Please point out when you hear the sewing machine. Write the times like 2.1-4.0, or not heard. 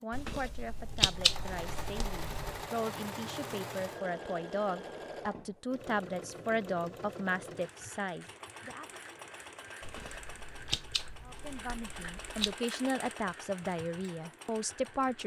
1.1-15.2.